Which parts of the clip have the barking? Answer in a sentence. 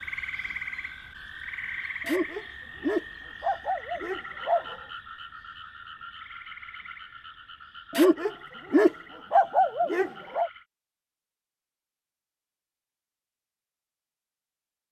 You can hear the barking from 2.0 to 4.8 s and from 7.9 to 10.5 s.